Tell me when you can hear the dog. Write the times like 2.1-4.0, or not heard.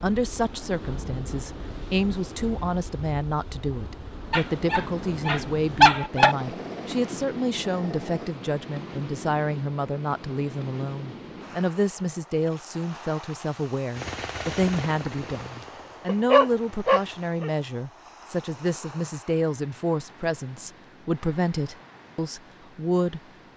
4.3-6.3, 16.1-17.5.